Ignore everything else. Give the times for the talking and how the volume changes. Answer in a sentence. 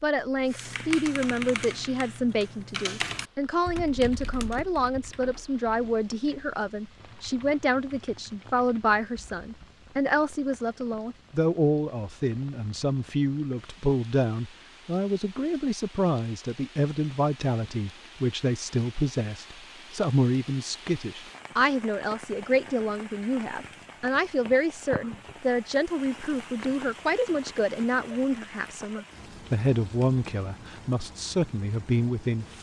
You can hear the talking from 0.0 to 32.5 s, at a steady volume.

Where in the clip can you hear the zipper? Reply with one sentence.
The zipper can't be heard in this clip.